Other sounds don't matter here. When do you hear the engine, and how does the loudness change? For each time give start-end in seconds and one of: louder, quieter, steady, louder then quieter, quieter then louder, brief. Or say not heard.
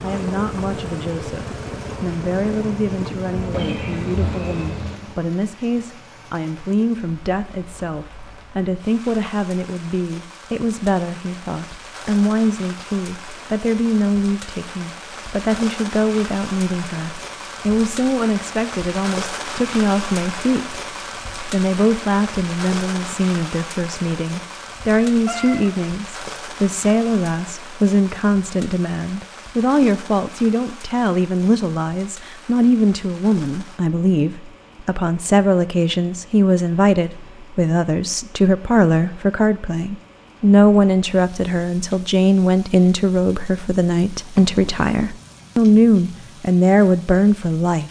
0.0-4.9 steady.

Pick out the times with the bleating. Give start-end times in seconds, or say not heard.
not heard.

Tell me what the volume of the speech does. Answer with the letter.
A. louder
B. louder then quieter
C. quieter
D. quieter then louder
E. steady
A.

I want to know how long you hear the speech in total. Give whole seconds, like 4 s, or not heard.
47 s.